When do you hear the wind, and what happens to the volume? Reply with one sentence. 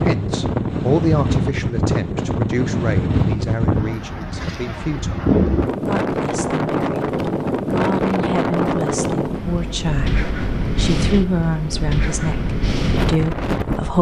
The wind can be heard from 0.0 to 13.9 s, at a steady volume.